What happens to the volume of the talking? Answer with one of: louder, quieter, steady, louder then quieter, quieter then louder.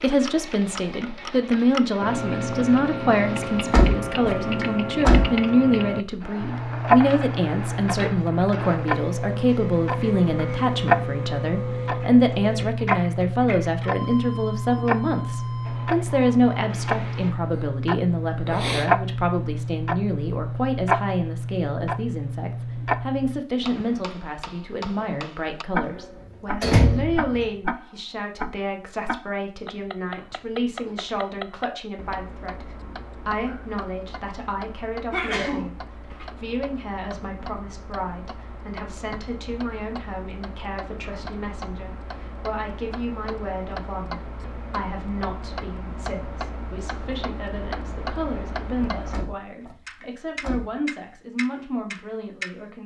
quieter.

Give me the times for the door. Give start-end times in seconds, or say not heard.
3.5-5.3, 26.6-27.4, 49.0-50.8.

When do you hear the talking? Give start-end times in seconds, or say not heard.
0.0-52.8.